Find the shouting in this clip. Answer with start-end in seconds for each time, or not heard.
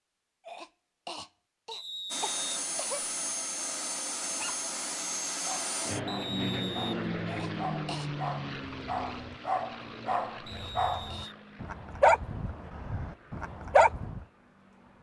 not heard.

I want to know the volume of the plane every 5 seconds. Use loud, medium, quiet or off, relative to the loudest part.
loud, loud, quiet.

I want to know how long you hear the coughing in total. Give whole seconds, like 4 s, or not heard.
4 s.